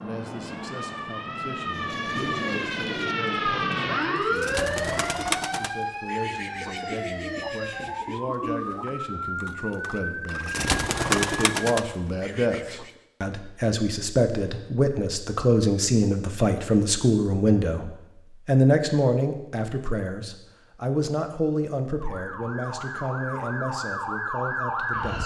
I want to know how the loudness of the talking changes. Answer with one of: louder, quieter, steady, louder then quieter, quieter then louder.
louder then quieter.